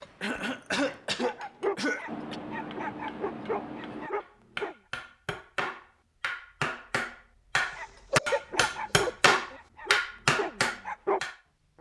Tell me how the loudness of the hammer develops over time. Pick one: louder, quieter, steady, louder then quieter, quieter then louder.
louder.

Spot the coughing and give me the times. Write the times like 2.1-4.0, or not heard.
0.2-2.4, 7.6-9.6.